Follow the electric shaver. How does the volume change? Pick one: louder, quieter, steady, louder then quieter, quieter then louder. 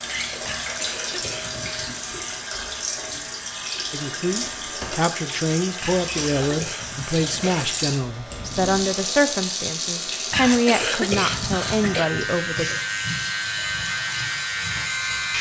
louder.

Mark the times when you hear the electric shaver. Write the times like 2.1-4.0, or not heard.
0.0-15.3.